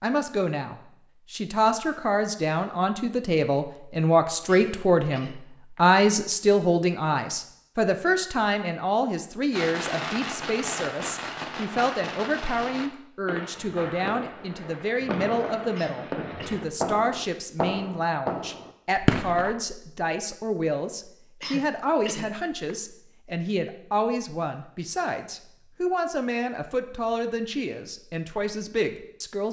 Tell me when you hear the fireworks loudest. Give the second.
19 s.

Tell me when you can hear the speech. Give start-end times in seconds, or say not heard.
0.0-29.4.